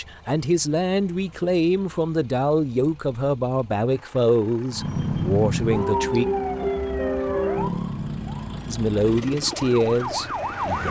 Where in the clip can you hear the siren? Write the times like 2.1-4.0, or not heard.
4.7-10.8.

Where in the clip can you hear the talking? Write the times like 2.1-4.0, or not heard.
0.0-6.2, 8.7-10.8.